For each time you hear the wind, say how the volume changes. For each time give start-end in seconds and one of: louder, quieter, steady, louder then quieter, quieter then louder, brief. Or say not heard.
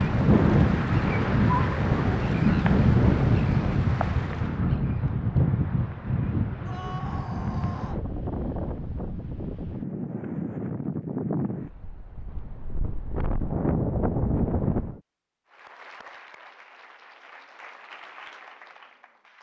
0.0-15.0 quieter.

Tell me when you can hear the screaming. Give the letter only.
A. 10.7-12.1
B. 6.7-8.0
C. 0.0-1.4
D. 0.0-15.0
B.